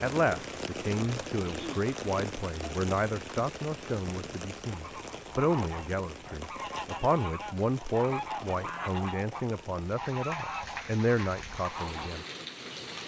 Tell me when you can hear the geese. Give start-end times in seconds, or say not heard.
4.8-12.2.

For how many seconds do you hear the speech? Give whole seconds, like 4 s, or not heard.
12 s.